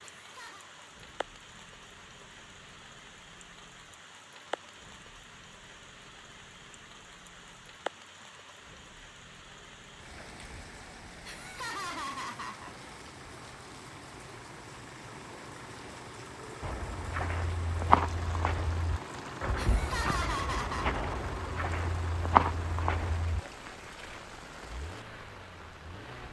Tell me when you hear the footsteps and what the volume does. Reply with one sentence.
The footsteps can be heard from 16.6 to 23.4 s, getting quieter then louder.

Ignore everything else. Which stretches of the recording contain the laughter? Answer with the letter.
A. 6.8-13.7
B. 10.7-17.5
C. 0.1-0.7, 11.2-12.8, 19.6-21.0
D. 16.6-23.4
C.